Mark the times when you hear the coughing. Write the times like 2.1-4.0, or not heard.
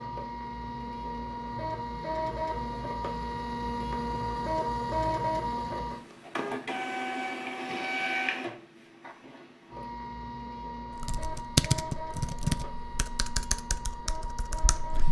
not heard.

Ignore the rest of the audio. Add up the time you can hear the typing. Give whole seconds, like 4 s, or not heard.
4 s.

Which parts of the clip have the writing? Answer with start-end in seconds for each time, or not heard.
not heard.